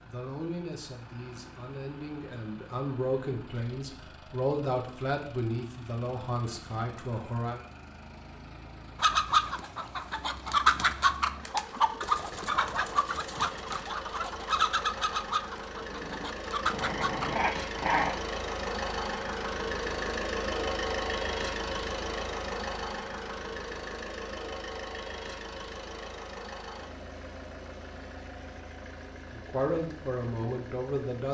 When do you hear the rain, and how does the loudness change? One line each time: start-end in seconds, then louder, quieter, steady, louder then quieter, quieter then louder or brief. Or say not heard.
not heard.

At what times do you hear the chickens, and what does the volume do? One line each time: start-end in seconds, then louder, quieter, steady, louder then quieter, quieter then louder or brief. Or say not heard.
9.0-17.3 quieter.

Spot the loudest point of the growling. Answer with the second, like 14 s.
18 s.